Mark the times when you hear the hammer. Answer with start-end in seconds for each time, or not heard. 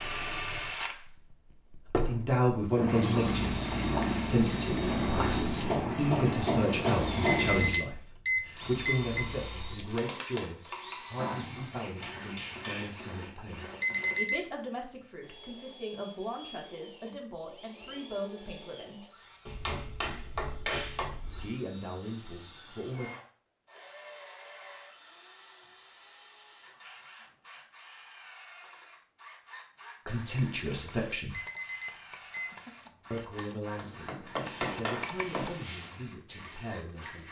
5.7-7.5, 11.2-12.9, 19.4-21.4, 33.8-35.5.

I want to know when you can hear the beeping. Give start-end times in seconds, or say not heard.
7.5-9.2, 13.8-14.4, 31.3-32.5.